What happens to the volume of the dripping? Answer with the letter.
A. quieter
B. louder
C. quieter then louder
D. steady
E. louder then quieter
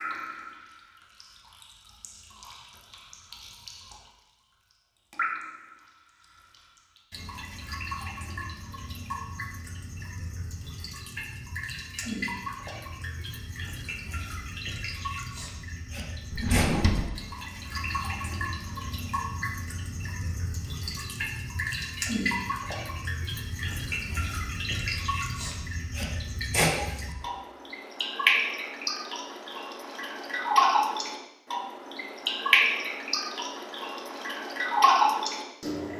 B.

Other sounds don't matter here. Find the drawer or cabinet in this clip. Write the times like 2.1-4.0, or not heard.
16.3-17.1.